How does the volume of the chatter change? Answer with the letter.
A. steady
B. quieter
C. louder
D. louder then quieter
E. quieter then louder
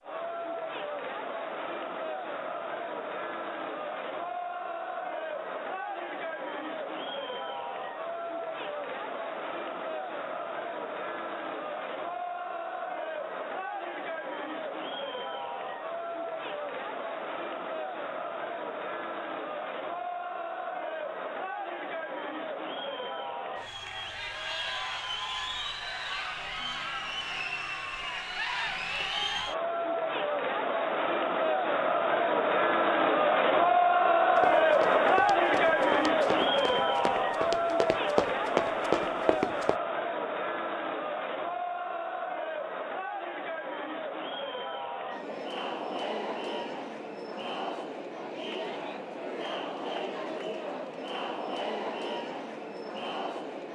D.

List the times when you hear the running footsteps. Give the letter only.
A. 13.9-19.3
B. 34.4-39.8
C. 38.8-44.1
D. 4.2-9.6
B.